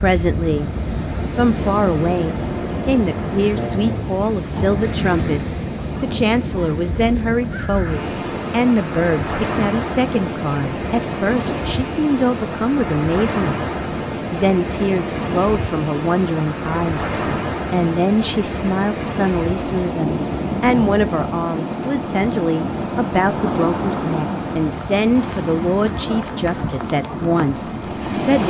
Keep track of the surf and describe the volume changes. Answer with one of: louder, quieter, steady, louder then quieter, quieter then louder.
steady.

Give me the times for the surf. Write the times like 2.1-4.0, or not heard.
0.0-28.4.